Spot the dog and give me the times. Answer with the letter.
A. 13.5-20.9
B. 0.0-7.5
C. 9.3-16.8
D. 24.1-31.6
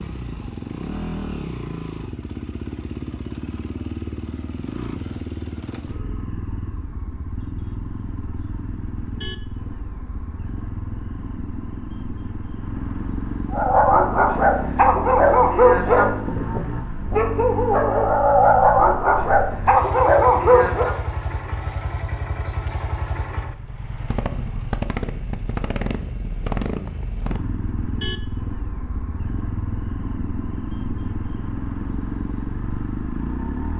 A.